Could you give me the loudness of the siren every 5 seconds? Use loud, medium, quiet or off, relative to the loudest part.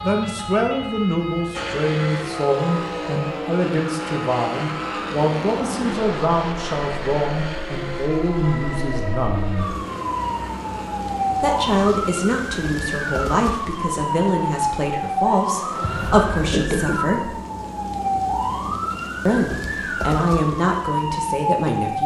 medium, medium, loud, loud, loud.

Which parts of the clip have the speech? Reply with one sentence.
The speech can be heard from 0.0 to 9.7 s, from 11.3 to 17.3 s and from 19.2 to 22.0 s.